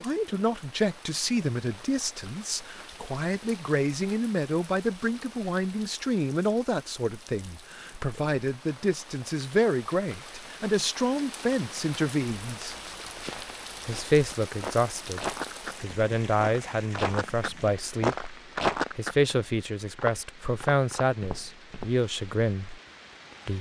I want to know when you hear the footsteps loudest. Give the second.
19 s.